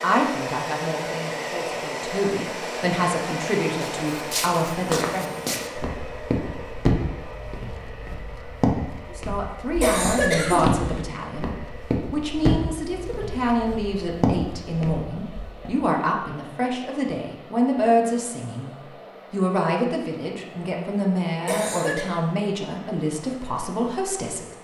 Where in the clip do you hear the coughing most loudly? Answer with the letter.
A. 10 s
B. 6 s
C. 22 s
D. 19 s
A.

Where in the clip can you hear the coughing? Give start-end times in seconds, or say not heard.
9.8-10.7, 21.4-22.1.